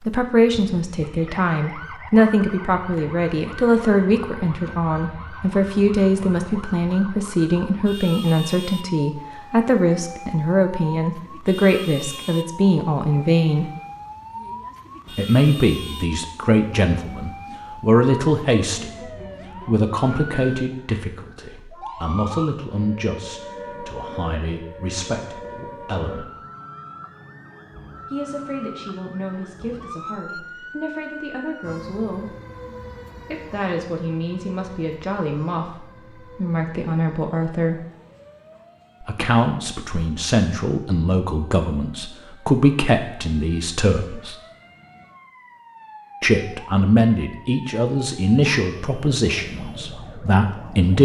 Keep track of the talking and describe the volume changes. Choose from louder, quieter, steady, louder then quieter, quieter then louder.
quieter then louder.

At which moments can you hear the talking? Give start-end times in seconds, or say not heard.
0.0-13.7, 15.2-26.3, 28.1-32.4, 33.2-37.9, 39.0-44.4, 46.2-51.0.